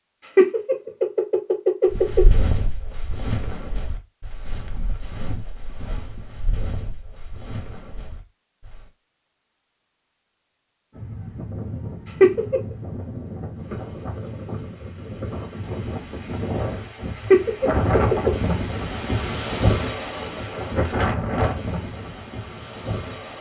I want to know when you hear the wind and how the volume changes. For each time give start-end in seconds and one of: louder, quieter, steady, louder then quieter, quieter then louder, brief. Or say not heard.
10.9-23.3 louder.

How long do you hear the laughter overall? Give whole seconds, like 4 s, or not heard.
3 s.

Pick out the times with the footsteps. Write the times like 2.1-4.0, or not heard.
1.9-8.9.